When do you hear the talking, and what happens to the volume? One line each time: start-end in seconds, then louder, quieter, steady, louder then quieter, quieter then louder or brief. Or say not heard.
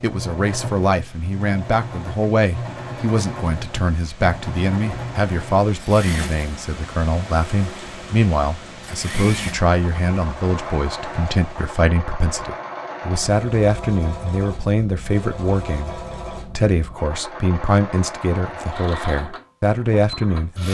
0.0-20.6 steady.